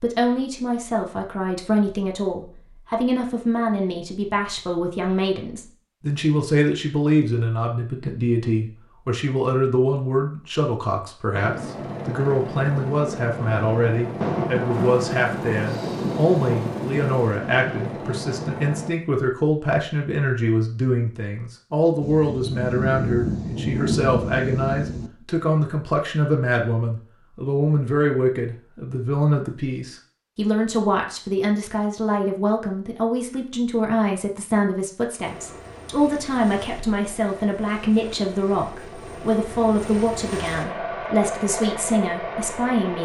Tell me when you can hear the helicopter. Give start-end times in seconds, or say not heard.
11.3-18.9, 35.2-43.0.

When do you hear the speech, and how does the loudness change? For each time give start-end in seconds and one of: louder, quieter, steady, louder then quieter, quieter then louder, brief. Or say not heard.
0.0-43.0 steady.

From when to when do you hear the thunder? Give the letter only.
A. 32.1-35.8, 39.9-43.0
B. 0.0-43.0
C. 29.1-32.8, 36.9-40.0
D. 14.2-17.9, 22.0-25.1
D.